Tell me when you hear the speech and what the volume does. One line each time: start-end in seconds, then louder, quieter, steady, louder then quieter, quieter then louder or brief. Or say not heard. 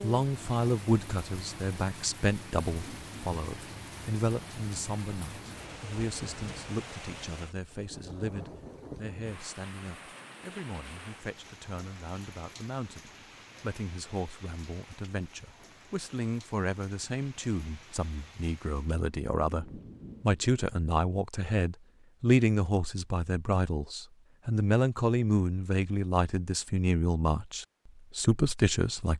0.0-29.1 quieter then louder.